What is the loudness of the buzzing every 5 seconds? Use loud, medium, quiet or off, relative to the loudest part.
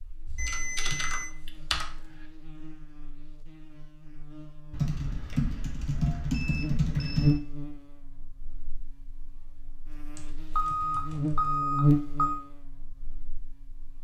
quiet, loud, loud.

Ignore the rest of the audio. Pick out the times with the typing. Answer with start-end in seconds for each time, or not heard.
0.2-2.1, 4.7-7.4, 10.2-11.6.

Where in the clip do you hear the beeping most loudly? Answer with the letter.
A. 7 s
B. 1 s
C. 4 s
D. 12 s
D.